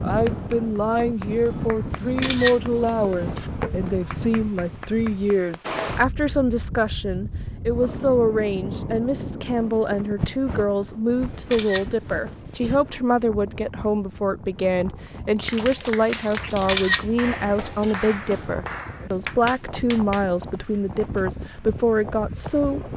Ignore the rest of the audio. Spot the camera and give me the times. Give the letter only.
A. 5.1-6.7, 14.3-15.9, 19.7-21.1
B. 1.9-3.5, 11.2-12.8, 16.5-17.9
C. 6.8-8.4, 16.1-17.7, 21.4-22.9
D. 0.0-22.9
B.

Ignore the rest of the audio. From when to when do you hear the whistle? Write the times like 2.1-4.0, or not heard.
not heard.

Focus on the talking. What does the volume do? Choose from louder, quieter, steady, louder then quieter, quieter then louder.
steady.